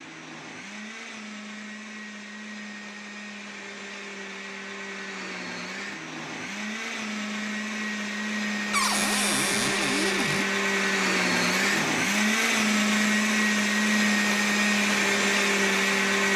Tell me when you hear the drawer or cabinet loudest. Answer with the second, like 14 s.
9 s.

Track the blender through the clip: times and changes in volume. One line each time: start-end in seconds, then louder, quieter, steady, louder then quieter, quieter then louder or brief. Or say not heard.
0.0-16.3 louder.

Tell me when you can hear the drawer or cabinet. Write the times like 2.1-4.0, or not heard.
8.7-10.4.